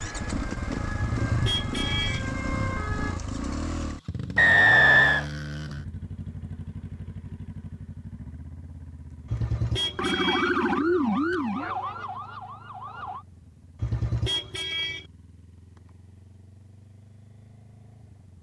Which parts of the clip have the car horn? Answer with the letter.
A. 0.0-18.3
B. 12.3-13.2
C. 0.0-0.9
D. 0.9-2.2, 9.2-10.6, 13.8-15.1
D.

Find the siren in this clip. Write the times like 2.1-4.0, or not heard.
0.0-3.2, 9.9-13.2.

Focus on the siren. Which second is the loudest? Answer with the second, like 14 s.
11 s.